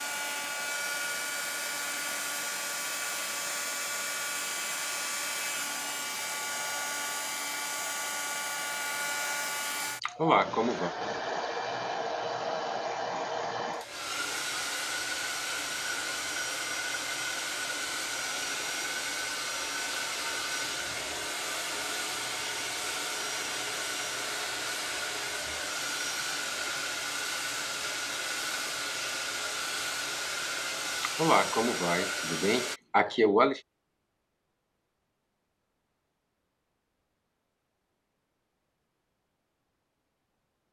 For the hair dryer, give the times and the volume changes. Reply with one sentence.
You can hear the hair dryer from 0.0 to 32.8 s, at a steady volume.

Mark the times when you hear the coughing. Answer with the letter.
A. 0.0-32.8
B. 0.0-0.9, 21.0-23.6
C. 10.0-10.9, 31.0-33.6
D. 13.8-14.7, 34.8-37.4
C.